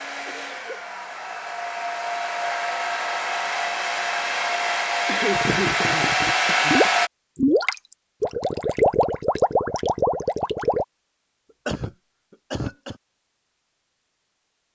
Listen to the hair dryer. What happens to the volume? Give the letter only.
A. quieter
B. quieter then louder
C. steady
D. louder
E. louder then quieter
D.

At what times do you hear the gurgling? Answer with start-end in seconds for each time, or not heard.
5.3-10.8.